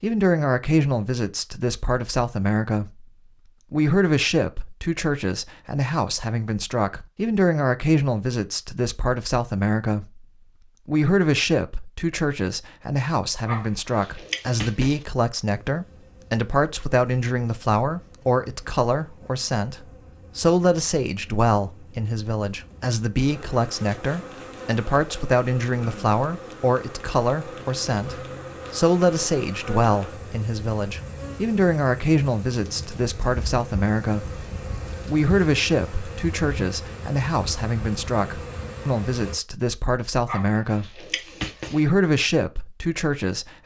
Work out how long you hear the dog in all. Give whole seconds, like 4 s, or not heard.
3 s.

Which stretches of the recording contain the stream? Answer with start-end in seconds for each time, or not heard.
not heard.